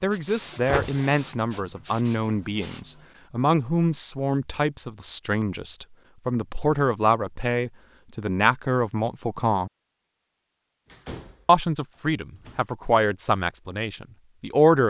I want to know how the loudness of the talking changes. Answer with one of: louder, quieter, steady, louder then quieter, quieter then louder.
steady.